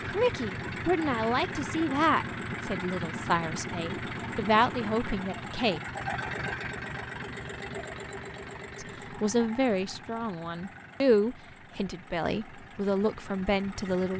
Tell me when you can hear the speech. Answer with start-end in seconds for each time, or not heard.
0.0-5.8, 8.8-14.1.